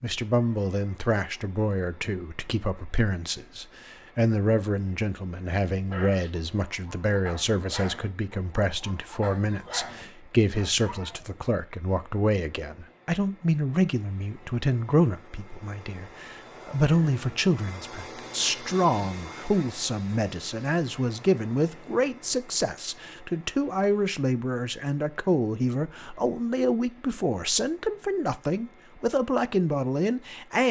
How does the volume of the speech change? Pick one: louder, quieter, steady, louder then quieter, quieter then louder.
steady.